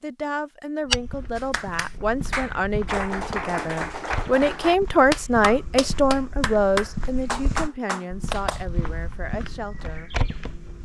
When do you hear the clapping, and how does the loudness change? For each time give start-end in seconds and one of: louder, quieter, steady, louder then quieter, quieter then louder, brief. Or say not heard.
1.4-8.7 steady.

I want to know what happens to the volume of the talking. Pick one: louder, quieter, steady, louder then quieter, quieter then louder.
louder then quieter.